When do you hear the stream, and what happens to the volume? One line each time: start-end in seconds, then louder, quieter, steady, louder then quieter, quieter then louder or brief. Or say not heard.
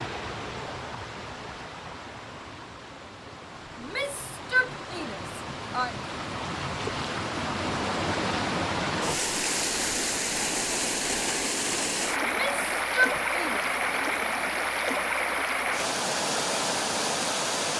0.0-17.7 louder.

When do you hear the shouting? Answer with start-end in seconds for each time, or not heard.
3.8-6.0, 12.2-13.7.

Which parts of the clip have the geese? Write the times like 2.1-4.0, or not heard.
not heard.